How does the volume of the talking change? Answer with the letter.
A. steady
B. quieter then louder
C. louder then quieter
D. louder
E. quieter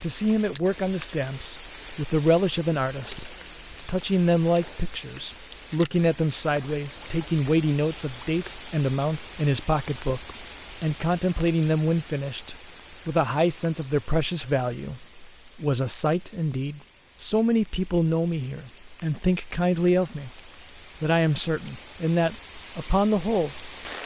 A.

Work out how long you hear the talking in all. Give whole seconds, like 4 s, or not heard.
24 s.